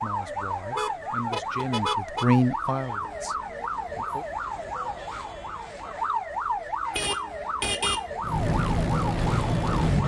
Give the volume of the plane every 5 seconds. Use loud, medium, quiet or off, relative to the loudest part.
off, loud.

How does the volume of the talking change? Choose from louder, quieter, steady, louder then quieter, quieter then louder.
louder then quieter.